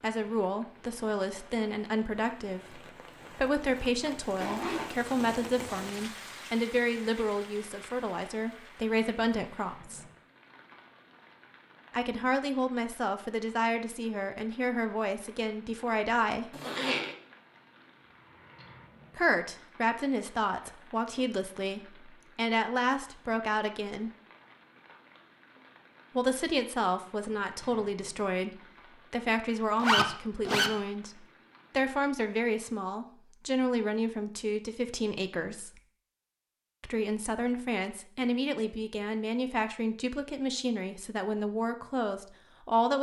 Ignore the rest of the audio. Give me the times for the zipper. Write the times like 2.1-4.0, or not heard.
4.4-6.0, 16.5-17.1, 29.8-30.7.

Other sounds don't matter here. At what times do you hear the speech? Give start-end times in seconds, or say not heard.
0.0-10.1, 11.9-16.6, 19.1-24.1, 26.1-35.8, 36.8-42.9.